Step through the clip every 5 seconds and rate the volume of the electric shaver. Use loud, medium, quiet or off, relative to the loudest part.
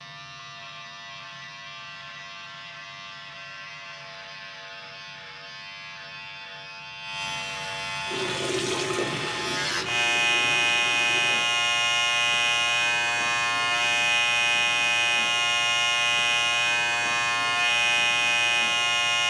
quiet, medium, loud, loud.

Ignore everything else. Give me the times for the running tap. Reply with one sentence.
The running tap can be heard from 8.1 to 11.4 s.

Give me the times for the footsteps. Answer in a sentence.
The footsteps can't be heard in this clip.